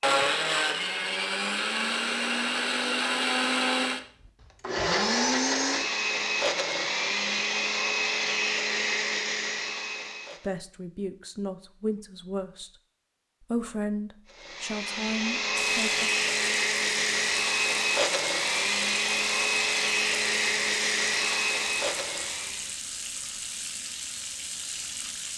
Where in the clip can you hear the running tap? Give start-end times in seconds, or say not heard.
15.6-25.3.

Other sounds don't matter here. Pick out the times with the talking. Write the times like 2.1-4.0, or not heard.
10.4-12.7, 13.4-16.1.